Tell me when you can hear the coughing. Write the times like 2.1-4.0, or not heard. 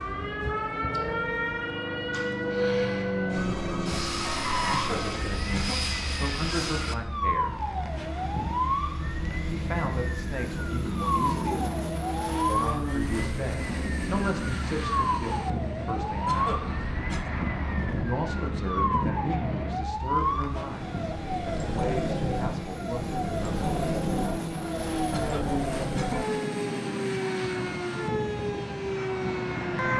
4.7-6.0, 16.2-17.4, 25.1-26.4.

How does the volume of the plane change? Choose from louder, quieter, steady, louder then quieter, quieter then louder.
steady.